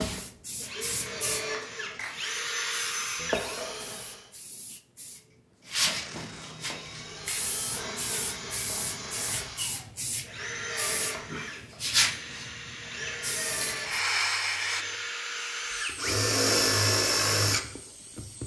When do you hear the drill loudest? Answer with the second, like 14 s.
17 s.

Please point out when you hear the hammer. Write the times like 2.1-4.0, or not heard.
not heard.